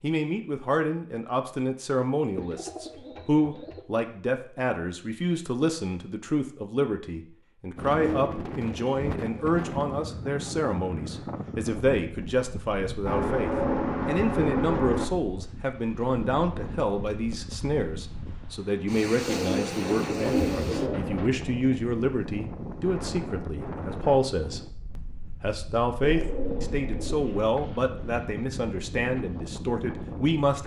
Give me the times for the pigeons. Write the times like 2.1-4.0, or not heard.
2.4-3.9, 8.0-10.1, 13.1-15.1, 19.2-21.3, 26.0-27.6.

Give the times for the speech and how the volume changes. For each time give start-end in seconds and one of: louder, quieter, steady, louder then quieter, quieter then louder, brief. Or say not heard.
0.0-30.6 steady.